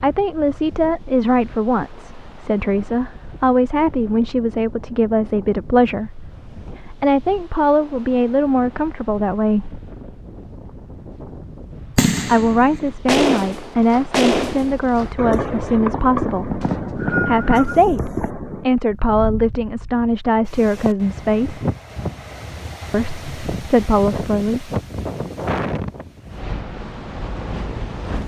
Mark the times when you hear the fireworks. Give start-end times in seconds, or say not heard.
11.9-18.6.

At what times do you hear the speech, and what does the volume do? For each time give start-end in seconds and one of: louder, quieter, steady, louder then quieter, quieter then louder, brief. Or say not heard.
0.0-9.8 steady
12.2-16.6 steady
17.2-21.6 steady
22.9-24.7 brief.